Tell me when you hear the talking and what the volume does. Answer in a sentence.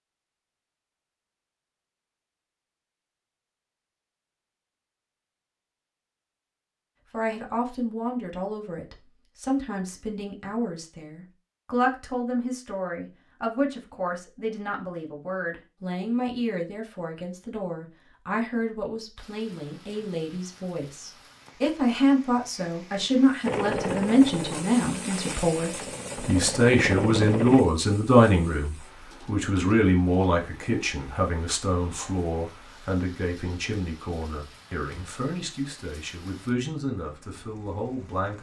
The talking can be heard from 7.1 to 38.3 s, getting louder then quieter.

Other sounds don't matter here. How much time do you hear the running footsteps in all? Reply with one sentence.
You can't hear the running footsteps here.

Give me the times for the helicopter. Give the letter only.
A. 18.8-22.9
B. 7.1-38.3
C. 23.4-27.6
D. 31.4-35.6
C.